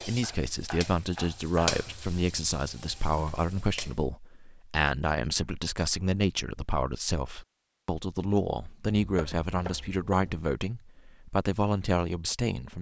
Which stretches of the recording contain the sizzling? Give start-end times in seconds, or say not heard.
0.0-4.0.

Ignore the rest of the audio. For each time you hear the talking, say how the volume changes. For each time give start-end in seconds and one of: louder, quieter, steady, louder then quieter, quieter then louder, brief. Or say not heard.
0.1-12.7 steady.